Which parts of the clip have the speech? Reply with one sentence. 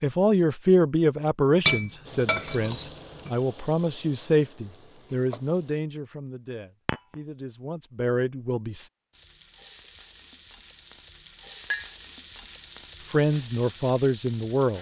You can hear the speech from 0.0 to 8.9 s and from 13.0 to 14.7 s.